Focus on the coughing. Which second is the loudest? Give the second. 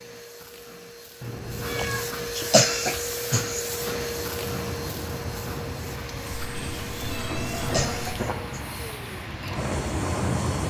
3 s.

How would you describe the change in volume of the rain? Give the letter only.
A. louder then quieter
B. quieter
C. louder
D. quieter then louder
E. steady
C.